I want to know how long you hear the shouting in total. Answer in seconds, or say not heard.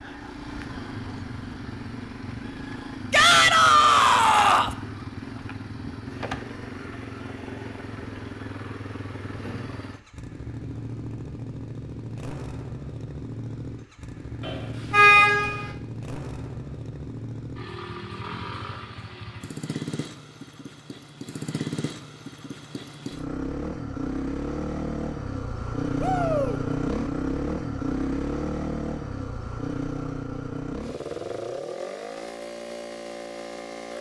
2 s.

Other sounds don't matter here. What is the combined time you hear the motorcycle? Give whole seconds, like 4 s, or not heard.
34 s.